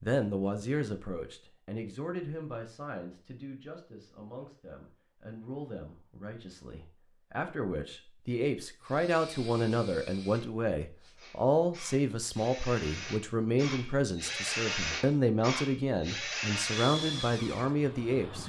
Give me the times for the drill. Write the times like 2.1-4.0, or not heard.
8.8-18.4.